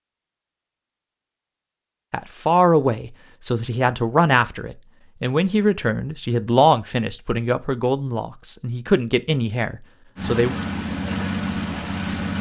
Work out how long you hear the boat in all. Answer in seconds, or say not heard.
2 s.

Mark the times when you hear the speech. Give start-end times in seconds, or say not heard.
2.1-10.6.